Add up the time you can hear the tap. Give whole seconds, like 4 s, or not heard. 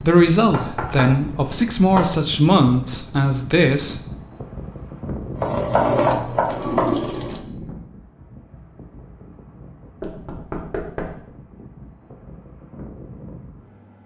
2 s.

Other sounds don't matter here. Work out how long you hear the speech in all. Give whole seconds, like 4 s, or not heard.
4 s.